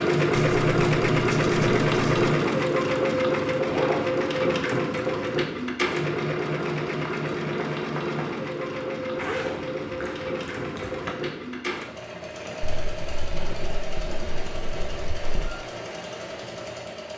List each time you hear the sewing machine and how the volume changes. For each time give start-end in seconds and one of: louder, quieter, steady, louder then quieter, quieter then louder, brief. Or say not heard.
0.0-17.1 quieter.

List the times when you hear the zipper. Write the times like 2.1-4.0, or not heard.
3.6-4.0, 9.2-11.1.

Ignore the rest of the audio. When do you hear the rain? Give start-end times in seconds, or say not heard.
not heard.